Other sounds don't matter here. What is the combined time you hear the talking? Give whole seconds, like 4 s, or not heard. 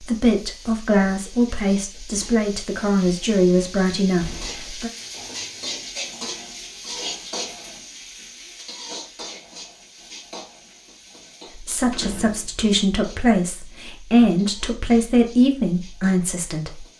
10 s.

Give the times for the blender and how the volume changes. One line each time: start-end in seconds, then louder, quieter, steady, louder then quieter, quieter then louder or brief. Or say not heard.
not heard.